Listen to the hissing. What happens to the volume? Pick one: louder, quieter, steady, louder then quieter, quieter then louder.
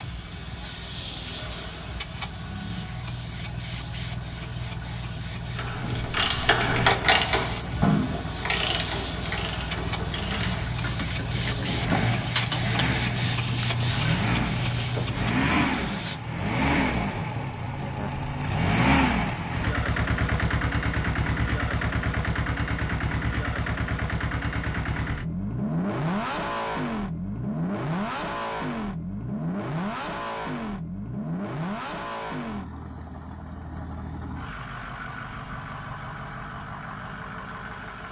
louder.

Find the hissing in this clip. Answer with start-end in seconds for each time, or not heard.
0.0-16.2.